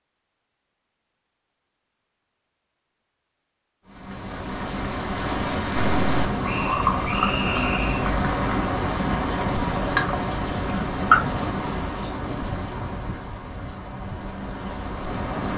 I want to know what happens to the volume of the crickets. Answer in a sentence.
The loudness of the crickets goes down.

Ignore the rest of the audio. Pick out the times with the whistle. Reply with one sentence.
You can hear the whistle from 6.5 to 8.1 s.